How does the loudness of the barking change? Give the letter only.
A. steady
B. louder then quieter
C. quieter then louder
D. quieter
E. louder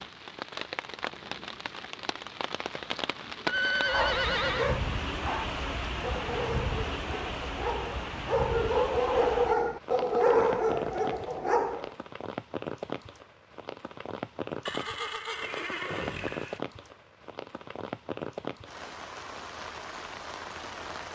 E.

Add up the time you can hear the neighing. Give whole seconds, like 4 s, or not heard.
3 s.